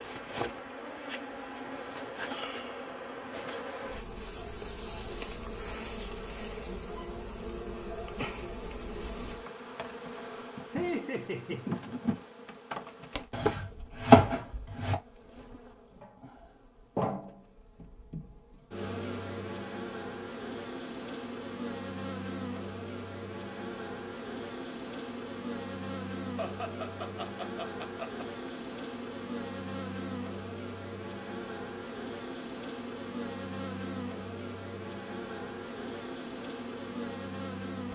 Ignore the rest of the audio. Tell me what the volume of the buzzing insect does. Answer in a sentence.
The volume of the buzzing insect stays about the same.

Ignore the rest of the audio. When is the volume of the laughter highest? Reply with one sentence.
The volume of the laughter peaks at 11 seconds.